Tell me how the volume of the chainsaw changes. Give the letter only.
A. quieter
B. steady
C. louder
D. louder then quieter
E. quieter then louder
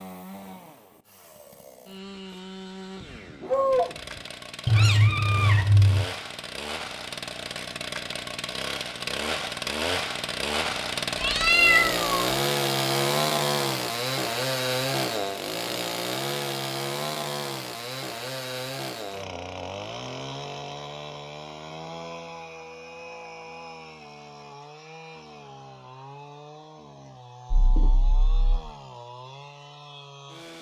D.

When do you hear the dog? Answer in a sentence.
The dog can be heard from 3.0 to 4.2 s.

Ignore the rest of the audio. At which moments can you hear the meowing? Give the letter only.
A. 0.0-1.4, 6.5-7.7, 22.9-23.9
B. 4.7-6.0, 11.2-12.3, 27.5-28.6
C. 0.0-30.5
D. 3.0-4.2
B.